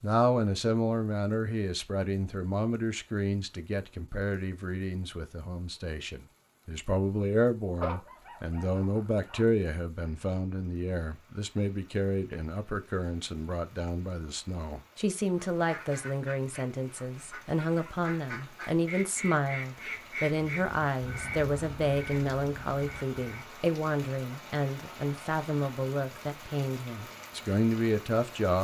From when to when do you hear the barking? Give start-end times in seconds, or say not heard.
7.8-9.4.